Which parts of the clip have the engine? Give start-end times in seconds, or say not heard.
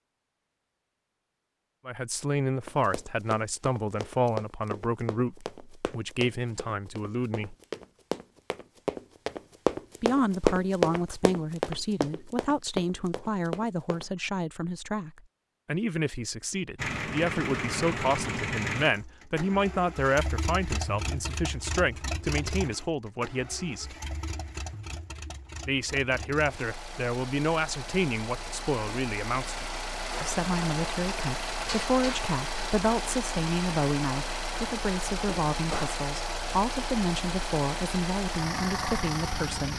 16.8-39.7.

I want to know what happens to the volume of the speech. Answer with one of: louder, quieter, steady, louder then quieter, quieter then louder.
steady.